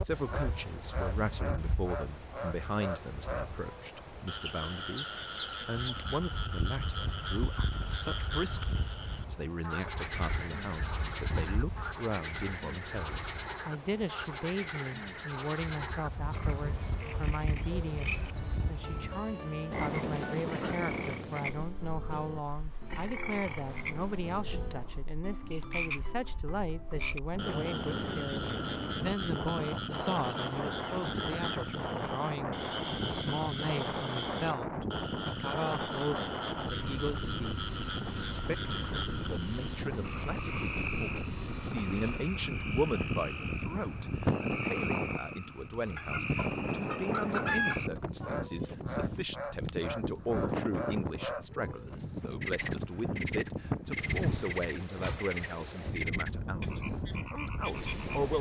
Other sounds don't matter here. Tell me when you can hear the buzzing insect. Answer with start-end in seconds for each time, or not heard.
not heard.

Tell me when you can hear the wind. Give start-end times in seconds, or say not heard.
0.0-58.3.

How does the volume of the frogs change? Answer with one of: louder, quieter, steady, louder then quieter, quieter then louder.
steady.